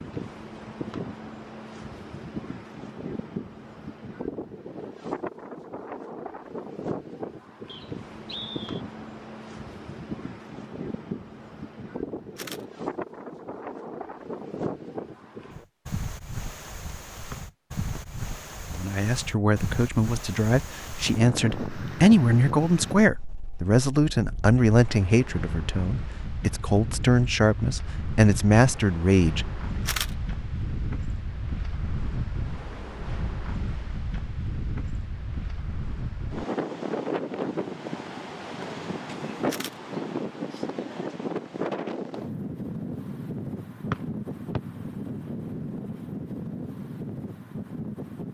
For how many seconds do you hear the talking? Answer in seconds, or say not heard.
11 s.